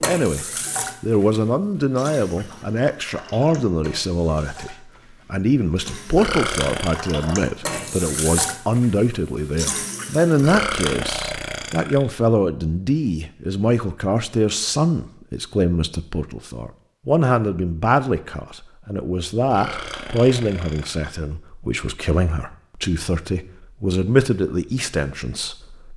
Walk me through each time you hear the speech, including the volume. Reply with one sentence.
The speech can be heard from 0.0 to 25.9 s, at a steady volume.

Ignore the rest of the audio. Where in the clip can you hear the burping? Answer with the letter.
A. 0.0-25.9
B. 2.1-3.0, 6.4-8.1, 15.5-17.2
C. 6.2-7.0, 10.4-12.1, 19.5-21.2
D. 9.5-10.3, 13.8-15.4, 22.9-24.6
C.